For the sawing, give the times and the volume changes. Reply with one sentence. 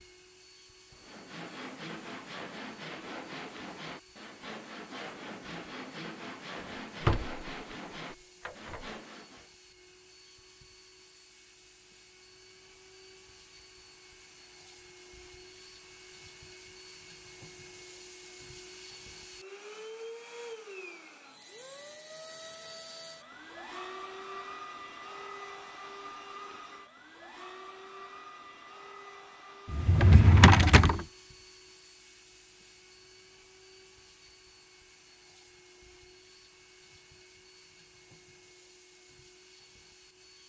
You can hear the sawing from 0.9 to 9.5 s, at a steady volume.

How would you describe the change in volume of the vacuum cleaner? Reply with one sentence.
The loudness of the vacuum cleaner goes up, then down.